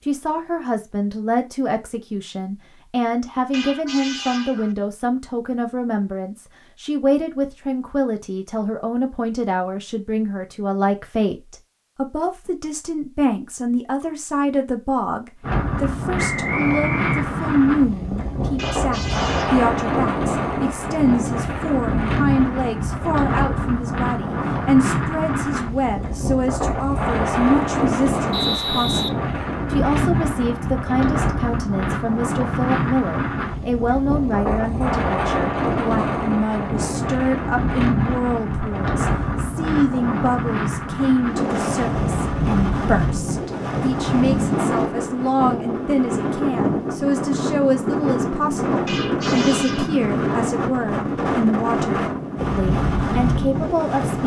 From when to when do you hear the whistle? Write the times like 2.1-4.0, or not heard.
16.1-17.4, 28.3-29.1.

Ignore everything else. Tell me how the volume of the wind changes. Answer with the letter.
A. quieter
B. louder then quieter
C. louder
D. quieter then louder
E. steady
E.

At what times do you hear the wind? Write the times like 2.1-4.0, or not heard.
15.4-54.2.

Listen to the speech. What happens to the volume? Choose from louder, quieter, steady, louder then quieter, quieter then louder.
steady.